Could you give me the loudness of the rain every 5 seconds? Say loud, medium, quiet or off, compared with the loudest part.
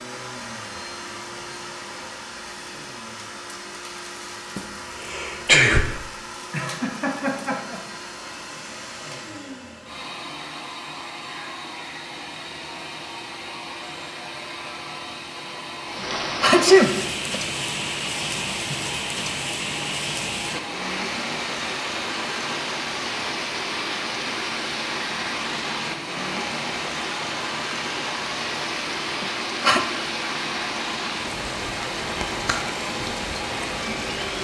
off, off, off, loud, loud, loud, loud.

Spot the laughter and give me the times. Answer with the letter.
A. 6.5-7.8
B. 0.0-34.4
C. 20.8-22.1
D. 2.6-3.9
A.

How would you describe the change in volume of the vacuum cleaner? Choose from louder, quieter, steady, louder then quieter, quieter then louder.
steady.